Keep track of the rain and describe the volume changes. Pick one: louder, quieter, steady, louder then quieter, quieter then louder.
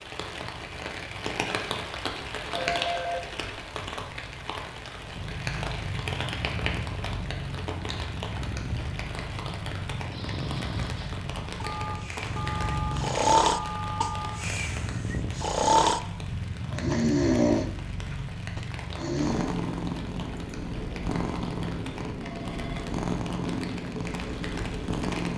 quieter.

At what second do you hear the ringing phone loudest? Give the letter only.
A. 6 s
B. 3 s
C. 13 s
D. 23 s
B.